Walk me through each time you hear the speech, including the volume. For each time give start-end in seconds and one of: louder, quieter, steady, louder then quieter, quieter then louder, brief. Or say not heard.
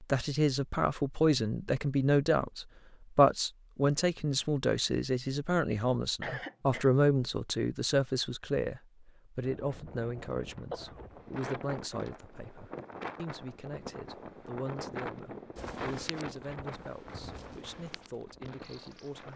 0.0-19.3 quieter.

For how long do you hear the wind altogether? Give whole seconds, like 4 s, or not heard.
10 s.